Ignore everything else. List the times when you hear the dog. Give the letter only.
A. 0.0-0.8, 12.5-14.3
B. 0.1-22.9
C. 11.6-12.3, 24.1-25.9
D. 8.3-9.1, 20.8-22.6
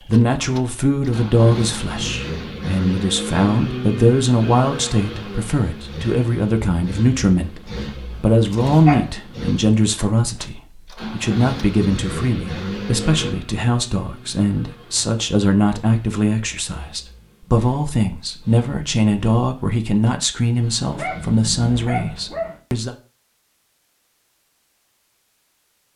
D.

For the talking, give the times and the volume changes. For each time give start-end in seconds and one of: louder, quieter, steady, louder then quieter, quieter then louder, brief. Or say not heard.
0.1-22.9 steady.